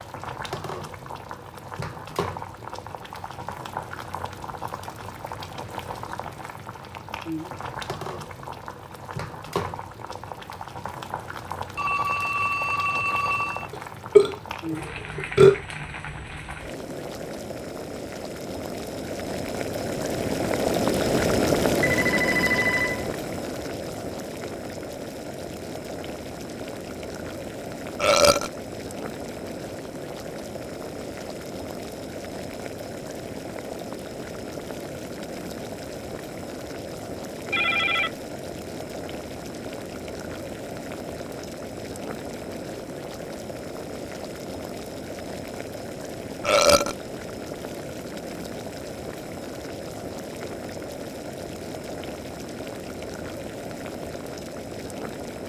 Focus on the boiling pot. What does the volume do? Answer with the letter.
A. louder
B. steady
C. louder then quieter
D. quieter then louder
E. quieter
C.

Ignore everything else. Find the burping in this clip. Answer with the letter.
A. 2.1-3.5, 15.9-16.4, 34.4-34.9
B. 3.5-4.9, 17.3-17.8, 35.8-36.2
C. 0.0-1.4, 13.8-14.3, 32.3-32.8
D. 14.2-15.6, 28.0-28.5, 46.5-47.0
D.